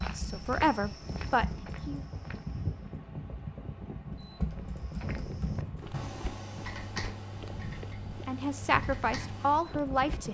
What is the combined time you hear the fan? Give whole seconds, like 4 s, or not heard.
10 s.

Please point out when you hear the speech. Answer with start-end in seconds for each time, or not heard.
0.1-2.0, 8.2-10.2.